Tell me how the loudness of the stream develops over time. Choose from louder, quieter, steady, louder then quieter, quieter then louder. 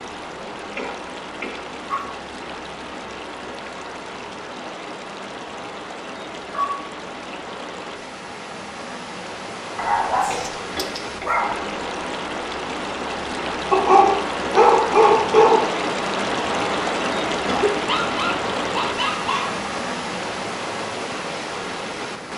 louder.